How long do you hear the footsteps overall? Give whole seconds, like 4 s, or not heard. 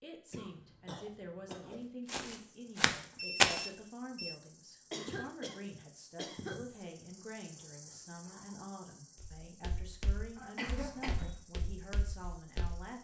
5 s.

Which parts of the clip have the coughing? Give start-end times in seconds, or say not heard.
0.3-1.9, 4.9-6.7, 10.3-11.3.